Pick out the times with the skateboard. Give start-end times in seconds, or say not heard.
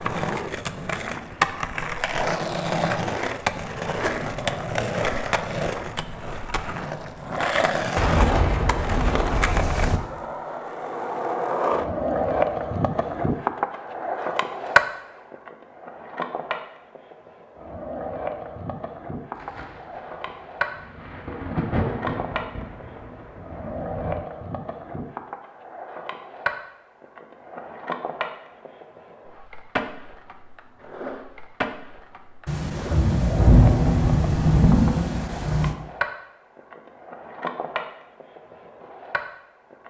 0.0-39.8.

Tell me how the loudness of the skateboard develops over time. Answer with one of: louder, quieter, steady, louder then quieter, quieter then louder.
quieter.